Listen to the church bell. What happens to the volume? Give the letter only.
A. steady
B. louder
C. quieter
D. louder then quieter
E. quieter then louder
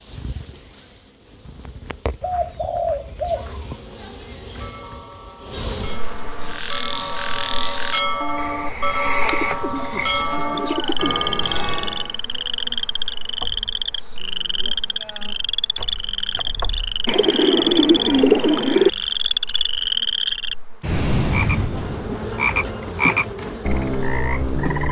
B.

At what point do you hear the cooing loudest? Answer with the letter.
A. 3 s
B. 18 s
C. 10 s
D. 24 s
B.